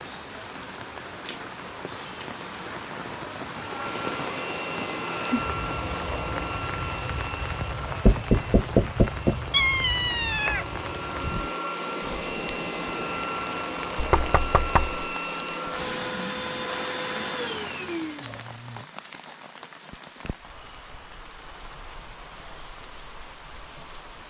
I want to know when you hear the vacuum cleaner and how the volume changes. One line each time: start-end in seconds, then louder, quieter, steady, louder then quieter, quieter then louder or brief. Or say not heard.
3.5-18.4 quieter then louder.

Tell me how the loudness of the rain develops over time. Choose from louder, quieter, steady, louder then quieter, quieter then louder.
quieter.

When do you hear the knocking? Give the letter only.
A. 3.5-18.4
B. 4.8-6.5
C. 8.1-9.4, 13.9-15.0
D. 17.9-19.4
C.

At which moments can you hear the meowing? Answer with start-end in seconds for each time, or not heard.
9.1-10.7.